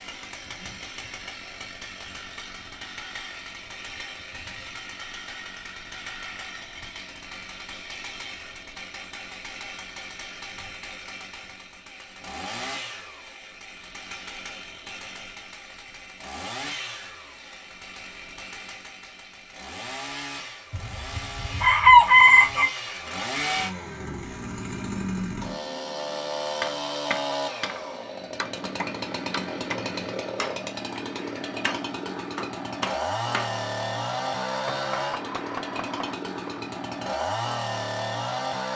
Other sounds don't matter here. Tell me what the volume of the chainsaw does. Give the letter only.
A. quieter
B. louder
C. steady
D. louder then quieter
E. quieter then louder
B.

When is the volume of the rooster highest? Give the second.
22 s.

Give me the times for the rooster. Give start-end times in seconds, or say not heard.
20.7-22.7.